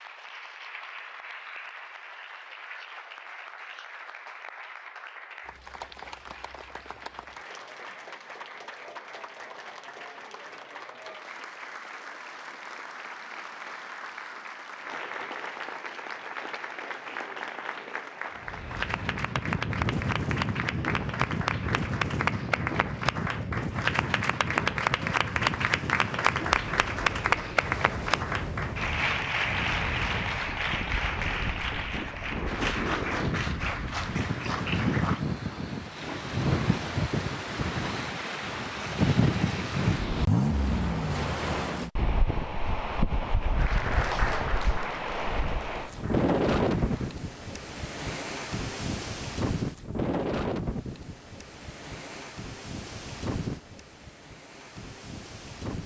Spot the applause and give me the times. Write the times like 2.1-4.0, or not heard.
0.0-35.2, 43.5-47.1.